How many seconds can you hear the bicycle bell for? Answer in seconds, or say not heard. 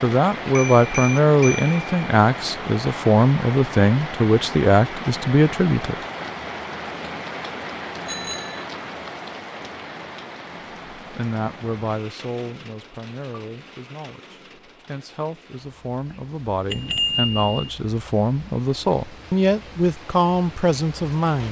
3 s.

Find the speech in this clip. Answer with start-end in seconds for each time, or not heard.
0.0-6.0, 10.9-21.4.